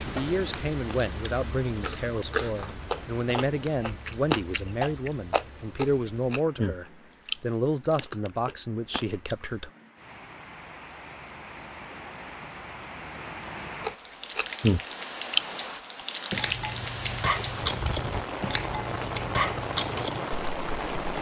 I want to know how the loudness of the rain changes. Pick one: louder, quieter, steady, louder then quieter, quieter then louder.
quieter then louder.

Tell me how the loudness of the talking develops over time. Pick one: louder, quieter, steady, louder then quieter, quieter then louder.
steady.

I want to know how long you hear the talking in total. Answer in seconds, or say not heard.
10 s.